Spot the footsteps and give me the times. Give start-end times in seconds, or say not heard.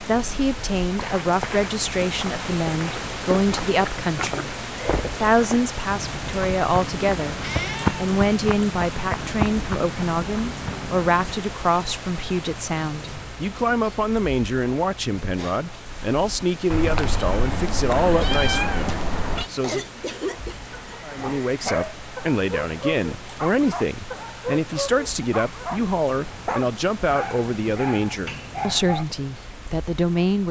0.9-11.4.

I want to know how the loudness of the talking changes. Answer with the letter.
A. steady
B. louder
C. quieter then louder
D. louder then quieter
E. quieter
A.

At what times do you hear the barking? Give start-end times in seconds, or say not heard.
20.2-29.1.